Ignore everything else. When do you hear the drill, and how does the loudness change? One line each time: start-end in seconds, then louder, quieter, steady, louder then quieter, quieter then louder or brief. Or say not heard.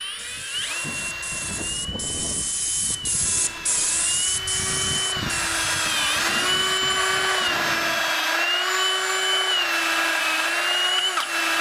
0.0-11.5 louder.